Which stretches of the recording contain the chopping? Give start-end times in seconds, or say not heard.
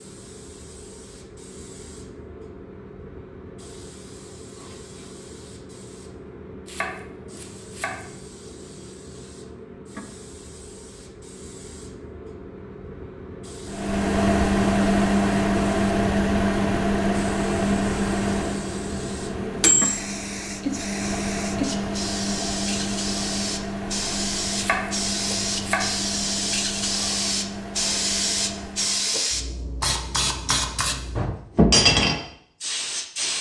6.7-8.1, 24.6-26.0.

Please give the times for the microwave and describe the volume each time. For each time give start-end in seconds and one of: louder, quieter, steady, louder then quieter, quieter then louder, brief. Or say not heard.
13.7-29.2 quieter.